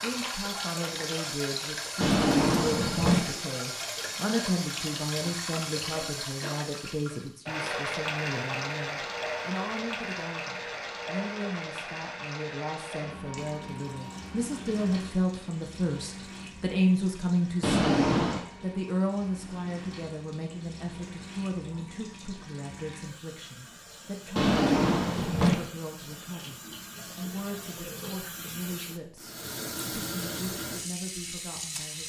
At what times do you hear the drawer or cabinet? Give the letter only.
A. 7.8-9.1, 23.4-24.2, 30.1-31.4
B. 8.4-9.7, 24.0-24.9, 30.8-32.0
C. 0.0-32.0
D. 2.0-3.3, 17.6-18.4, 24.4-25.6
D.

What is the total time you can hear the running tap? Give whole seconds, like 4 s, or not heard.
32 s.